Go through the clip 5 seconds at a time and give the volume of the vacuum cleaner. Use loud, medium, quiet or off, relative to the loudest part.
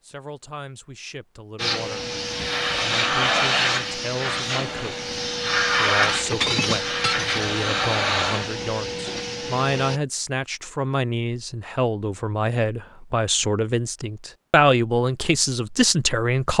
loud, loud, off, off.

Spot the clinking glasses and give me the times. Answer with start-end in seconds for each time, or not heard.
6.0-7.5.